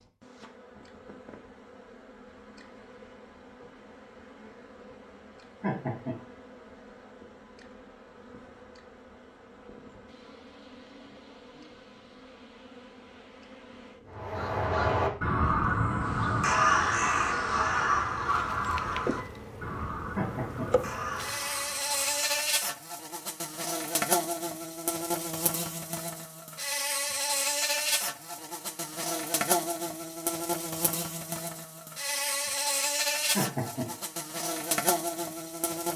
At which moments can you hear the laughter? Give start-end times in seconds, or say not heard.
5.6-6.2, 20.1-20.6, 33.4-33.9.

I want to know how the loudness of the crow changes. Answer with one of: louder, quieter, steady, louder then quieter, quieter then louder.
quieter.